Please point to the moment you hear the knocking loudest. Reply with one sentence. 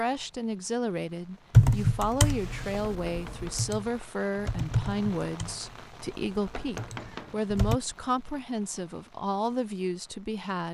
The volume of the knocking peaks at 7 seconds.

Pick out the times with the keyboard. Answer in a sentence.
The keyboard can be heard from 1.5 to 7.8 s.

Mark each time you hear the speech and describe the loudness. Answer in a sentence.
The speech can be heard from 0.0 to 10.6 s, at a steady volume.